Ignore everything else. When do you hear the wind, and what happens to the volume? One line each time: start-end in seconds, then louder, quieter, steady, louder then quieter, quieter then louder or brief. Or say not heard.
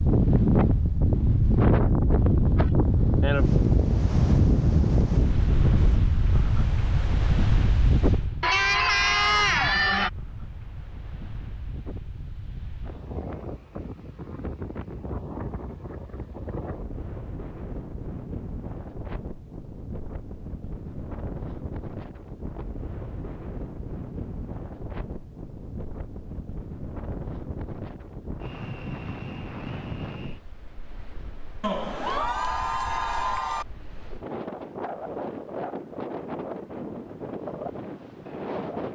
0.0-38.9 quieter.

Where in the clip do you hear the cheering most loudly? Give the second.
9 s.